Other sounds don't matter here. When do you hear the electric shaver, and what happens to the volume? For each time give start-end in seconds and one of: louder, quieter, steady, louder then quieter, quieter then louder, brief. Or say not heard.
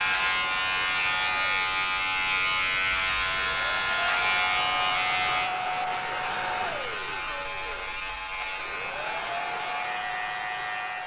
0.0-11.0 quieter.